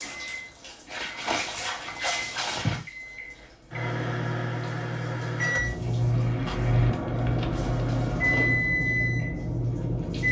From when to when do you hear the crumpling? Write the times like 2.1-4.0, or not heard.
0.9-2.9, 6.2-7.7.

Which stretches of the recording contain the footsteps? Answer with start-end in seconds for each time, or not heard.
not heard.